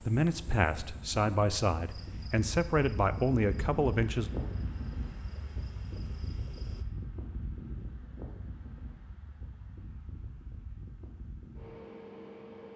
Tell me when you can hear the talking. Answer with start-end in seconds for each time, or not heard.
0.1-4.3.